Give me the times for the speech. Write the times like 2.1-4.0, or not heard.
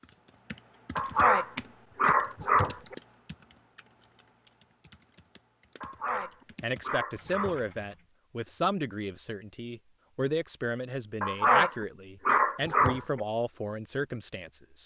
6.2-14.8.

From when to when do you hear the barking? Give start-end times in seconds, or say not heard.
0.9-3.0, 5.8-7.7, 11.2-13.2.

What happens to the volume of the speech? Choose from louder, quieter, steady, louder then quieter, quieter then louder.
steady.